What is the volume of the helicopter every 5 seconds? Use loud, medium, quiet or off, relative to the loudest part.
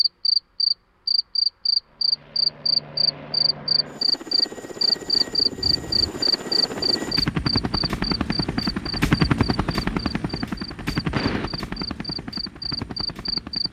quiet, loud, medium.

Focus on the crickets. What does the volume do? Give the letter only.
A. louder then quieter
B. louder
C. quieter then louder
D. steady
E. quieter
E.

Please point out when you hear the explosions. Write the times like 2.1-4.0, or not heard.
11.1-11.5.